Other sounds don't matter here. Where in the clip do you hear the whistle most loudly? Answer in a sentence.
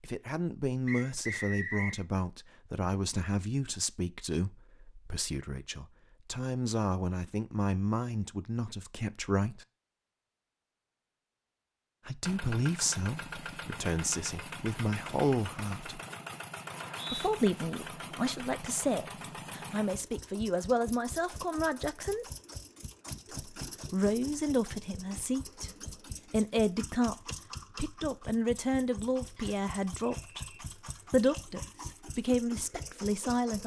The loudest moment of the whistle is at 2 seconds.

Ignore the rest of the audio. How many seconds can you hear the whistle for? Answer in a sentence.
The whistle can be heard for 3 seconds in total.